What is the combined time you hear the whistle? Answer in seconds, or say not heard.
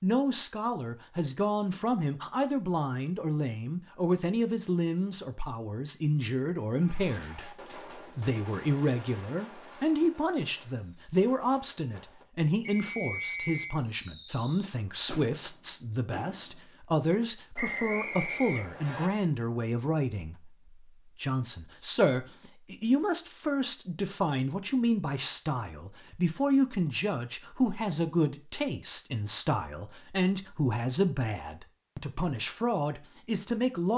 3 s.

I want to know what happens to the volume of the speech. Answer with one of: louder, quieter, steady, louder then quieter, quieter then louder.
steady.